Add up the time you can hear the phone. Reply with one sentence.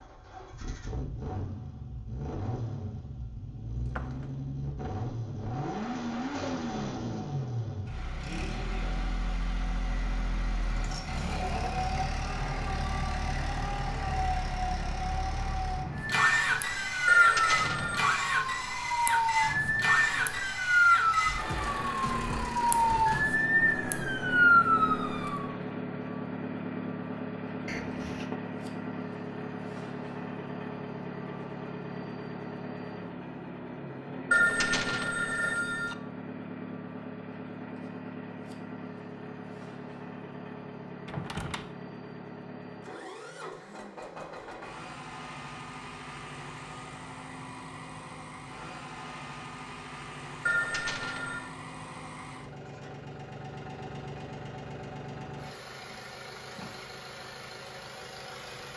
The phone can be heard for 4 seconds in total.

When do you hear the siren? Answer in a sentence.
The siren can be heard from 16.1 to 25.5 s.